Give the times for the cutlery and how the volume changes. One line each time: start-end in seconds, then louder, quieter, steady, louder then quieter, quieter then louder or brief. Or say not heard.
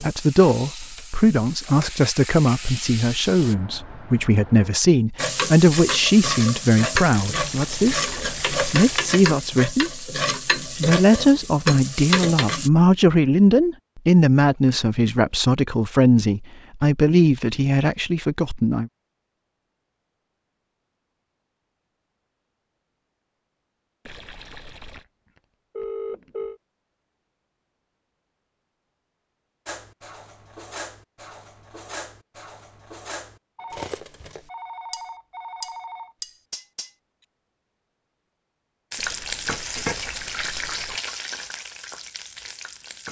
29.6-36.9 louder.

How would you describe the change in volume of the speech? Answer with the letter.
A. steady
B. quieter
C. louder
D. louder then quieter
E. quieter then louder
A.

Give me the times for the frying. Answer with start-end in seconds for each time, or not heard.
0.0-3.5, 5.2-12.7, 38.9-43.0.